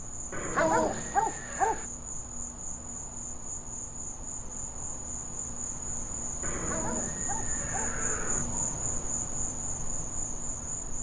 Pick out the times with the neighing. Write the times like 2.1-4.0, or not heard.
0.3-1.9, 6.4-8.4.